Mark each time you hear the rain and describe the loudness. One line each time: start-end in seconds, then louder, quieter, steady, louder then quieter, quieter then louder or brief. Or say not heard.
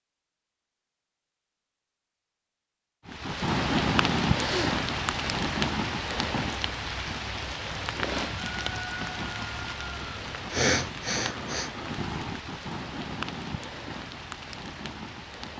3.0-15.5 quieter.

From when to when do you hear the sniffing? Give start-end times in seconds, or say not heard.
4.3-4.8, 10.3-11.7.